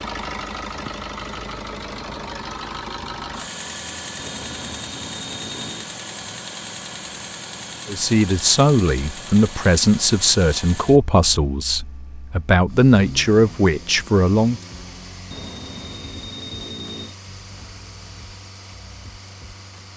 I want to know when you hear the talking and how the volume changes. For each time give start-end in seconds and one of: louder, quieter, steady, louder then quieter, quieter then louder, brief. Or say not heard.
7.8-14.6 steady.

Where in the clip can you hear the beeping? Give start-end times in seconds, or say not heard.
4.2-5.9, 15.3-17.1.